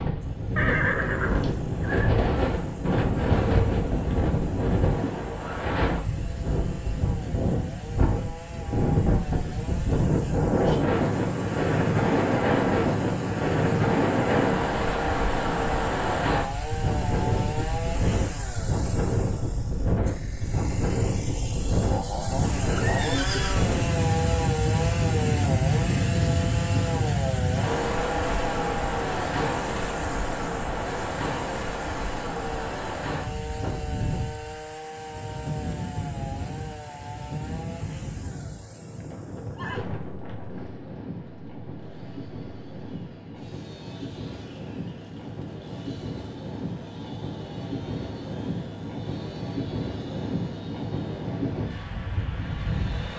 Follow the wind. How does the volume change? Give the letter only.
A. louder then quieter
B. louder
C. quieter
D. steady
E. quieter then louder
C.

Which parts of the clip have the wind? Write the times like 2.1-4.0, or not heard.
0.0-53.1.